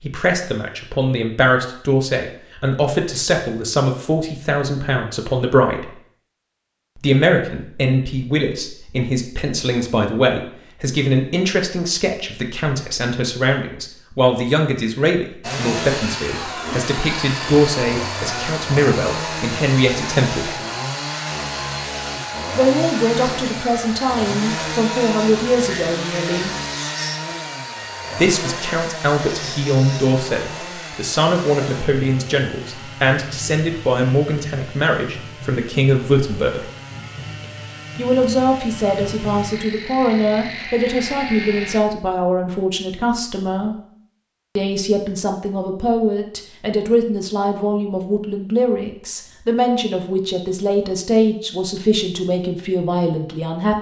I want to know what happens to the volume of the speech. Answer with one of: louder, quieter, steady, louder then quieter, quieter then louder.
steady.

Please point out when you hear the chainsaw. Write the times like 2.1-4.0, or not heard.
15.4-41.8.